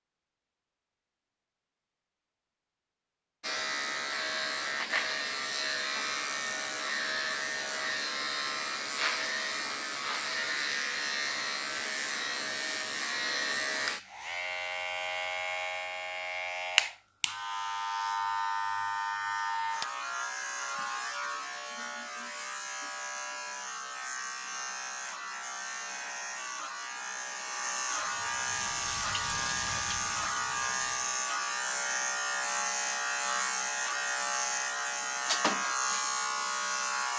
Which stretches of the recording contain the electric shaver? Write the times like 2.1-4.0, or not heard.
3.4-37.1.